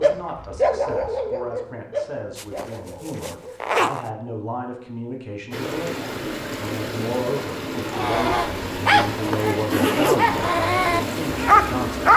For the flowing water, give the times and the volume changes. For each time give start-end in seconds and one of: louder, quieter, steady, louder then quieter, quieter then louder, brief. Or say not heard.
5.5-12.1 steady.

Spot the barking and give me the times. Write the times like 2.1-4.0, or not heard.
0.0-3.5, 7.9-12.1.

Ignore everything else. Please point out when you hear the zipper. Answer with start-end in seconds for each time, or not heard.
2.4-4.1, 9.1-10.2.